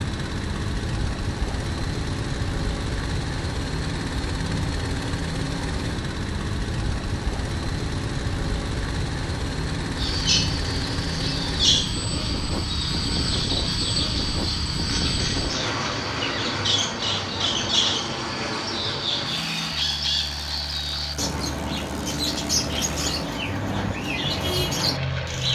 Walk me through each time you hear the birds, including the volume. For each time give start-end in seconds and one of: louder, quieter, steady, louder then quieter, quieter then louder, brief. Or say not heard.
9.9-25.4 steady.